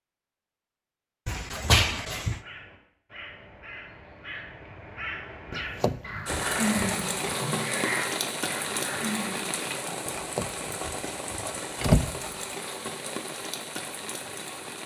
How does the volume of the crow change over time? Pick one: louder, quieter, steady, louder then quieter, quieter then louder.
louder.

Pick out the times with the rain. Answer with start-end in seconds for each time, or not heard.
6.2-14.8.